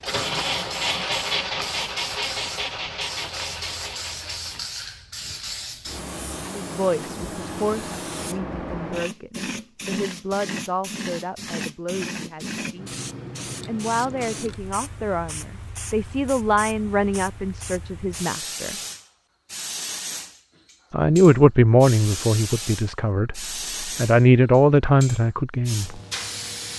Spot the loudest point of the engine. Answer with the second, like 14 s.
1 s.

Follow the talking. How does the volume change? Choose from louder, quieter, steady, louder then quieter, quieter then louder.
louder.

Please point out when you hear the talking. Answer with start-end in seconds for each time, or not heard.
6.5-12.9, 13.7-18.8, 20.9-26.0.